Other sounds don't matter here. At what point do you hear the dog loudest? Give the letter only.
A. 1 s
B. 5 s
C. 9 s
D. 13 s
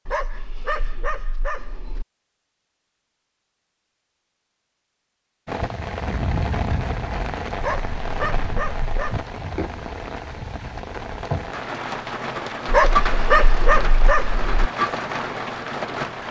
D.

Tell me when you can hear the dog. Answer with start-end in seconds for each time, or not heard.
0.1-2.0, 7.5-9.2, 12.7-14.7.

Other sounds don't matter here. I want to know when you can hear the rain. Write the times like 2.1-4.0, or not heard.
5.5-16.2.